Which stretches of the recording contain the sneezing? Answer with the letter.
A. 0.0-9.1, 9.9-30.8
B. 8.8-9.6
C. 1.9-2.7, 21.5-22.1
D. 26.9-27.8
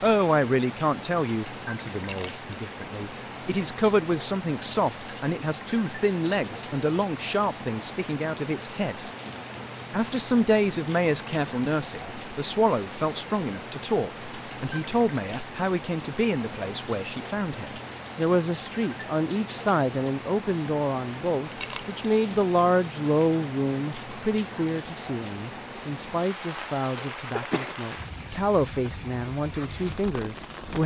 D.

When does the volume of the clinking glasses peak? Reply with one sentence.
The loudest moment of the clinking glasses is at 22 seconds.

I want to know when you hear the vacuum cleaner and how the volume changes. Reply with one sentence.
The vacuum cleaner can't be heard in this clip.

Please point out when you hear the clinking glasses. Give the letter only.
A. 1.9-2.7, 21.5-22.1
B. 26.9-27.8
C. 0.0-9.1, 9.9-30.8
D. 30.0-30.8
A.